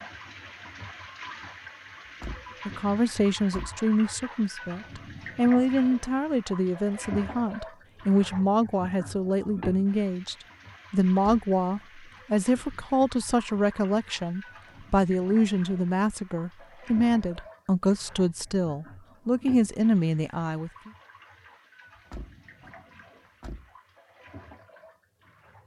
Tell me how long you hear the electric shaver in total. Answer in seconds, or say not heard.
not heard.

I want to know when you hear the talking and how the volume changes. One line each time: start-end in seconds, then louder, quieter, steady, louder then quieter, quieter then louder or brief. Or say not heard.
2.6-20.9 steady.